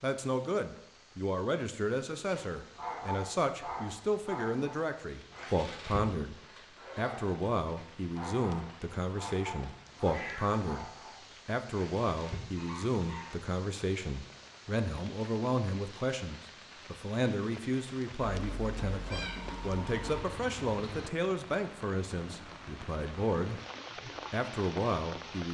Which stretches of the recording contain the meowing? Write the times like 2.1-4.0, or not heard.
10.1-10.7, 18.2-20.2.